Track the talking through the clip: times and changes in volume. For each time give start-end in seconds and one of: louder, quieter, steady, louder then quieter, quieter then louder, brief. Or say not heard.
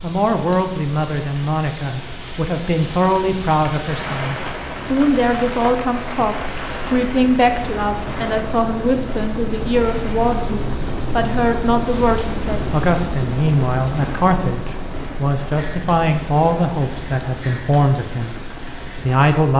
0.0-19.5 steady.